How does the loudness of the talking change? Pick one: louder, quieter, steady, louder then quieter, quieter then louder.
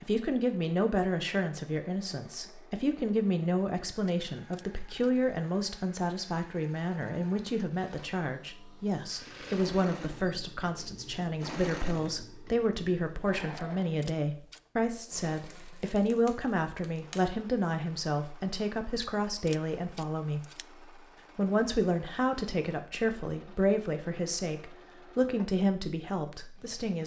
steady.